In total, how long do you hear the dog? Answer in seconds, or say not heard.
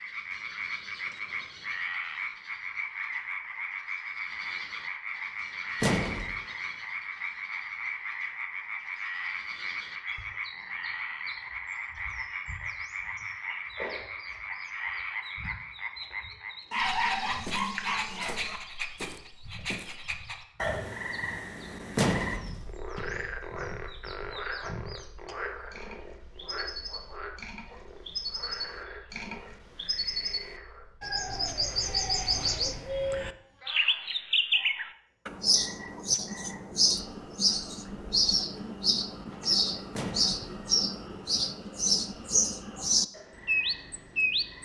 2 s.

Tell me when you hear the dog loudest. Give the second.
17 s.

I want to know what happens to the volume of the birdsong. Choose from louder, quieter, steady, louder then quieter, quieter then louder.
louder.